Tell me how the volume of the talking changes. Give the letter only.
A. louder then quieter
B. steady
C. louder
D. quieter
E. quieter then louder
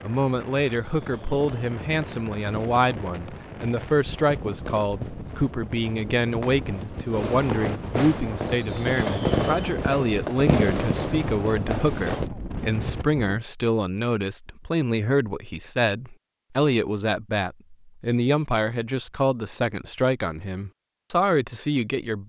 B.